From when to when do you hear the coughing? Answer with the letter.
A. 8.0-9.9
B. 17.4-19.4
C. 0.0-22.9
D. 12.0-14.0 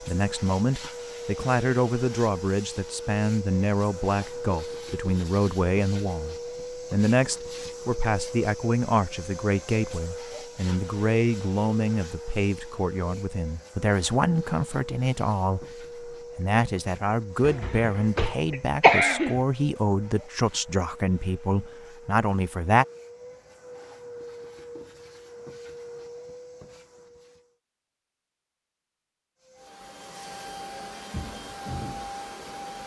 B.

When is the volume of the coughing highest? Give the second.
19 s.